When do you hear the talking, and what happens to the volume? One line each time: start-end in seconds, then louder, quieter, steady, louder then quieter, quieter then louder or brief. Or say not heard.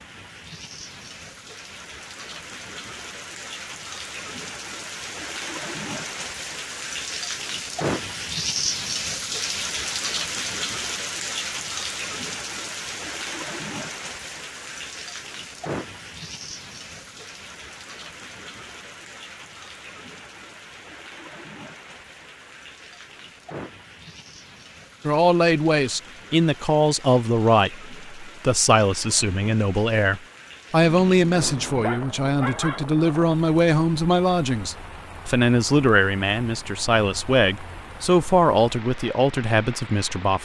25.1-40.4 steady.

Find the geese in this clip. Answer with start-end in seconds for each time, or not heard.
not heard.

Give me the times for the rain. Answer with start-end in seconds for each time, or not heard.
0.0-40.4.